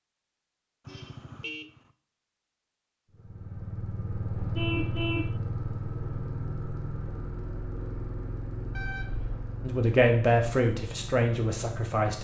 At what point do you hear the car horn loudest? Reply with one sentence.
The volume of the car horn peaks at 5 seconds.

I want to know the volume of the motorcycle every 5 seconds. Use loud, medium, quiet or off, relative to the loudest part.
loud, loud, medium.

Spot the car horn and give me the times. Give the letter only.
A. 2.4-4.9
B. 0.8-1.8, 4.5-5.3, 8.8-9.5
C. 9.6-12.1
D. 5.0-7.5
B.